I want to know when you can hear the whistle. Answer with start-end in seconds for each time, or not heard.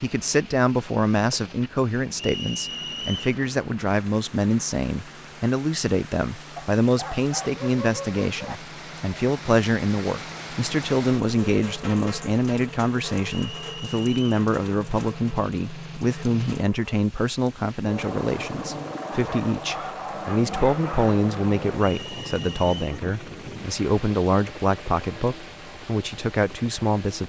2.1-3.4, 13.3-14.3, 21.9-22.9.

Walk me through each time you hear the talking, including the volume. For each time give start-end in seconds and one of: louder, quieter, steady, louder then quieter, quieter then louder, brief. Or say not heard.
0.0-27.2 steady.